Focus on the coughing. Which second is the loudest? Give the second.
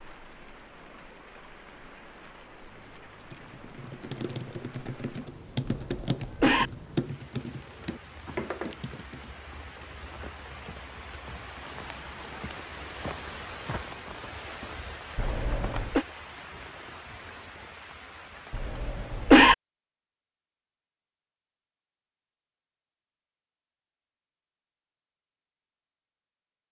19 s.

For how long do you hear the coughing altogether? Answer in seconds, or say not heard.
3 s.